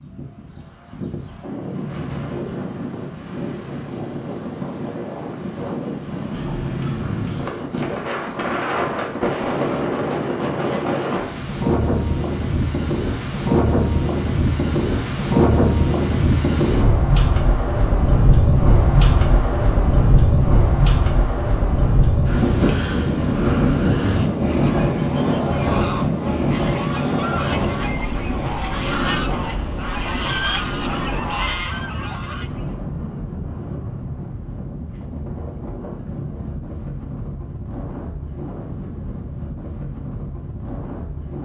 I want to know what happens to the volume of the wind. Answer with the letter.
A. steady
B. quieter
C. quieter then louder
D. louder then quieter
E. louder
D.